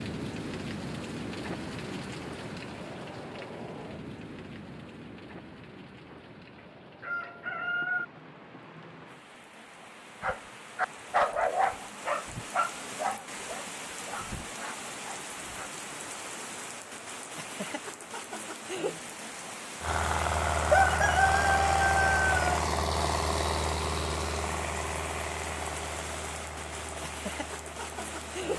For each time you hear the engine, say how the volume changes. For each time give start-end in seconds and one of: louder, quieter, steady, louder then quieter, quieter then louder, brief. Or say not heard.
19.8-28.5 quieter.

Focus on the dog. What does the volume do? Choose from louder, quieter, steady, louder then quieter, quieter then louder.
quieter.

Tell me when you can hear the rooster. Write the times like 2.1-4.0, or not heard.
6.1-8.1, 20.7-22.6.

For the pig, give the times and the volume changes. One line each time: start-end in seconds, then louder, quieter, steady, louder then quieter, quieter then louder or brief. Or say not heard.
not heard.